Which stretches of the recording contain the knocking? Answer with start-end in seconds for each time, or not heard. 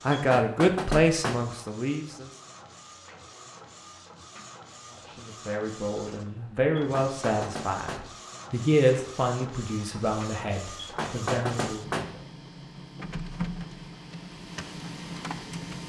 0.1-1.6, 6.8-8.2, 10.8-12.2.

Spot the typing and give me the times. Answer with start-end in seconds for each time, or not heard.
not heard.